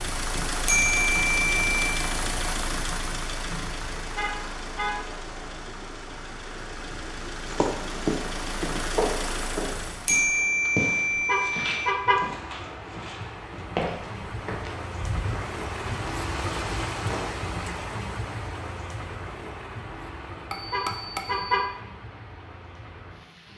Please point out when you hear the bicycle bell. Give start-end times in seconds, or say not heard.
0.7-1.9, 10.1-11.9, 20.5-21.6.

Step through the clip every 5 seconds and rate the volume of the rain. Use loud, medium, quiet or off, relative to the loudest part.
medium, medium, medium, loud, medium.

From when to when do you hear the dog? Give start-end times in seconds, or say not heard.
not heard.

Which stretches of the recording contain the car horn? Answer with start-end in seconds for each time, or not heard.
4.2-5.0, 11.2-12.2, 20.7-21.6.